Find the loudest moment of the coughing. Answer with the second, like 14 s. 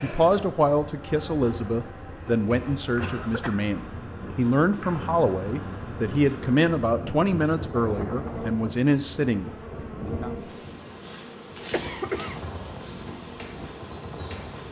12 s.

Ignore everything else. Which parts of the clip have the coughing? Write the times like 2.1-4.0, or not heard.
3.0-3.6, 11.7-12.4.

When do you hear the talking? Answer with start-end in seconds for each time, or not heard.
0.0-10.3.